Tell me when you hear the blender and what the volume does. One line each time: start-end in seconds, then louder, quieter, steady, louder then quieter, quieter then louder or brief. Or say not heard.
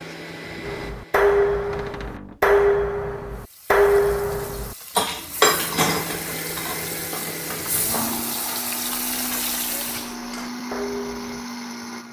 0.0-2.0 brief
5.5-12.0 steady.